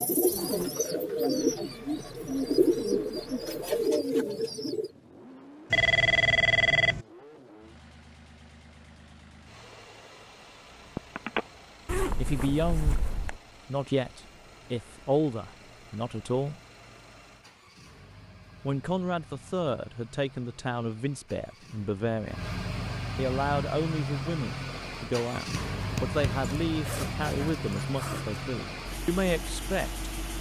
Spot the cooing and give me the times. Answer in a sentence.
You can hear the cooing from 0.0 to 4.9 s.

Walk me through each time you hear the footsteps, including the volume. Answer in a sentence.
You can't hear the footsteps here.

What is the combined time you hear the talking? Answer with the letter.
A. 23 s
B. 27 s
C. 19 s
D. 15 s
D.